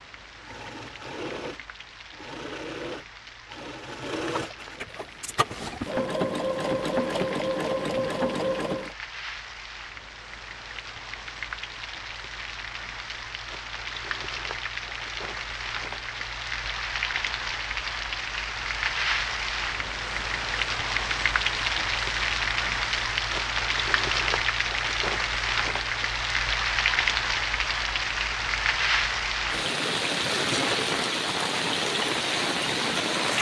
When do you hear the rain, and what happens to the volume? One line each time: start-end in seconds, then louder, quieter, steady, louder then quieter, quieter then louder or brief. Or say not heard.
0.0-33.3 louder.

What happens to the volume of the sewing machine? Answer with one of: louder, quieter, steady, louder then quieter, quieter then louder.
louder.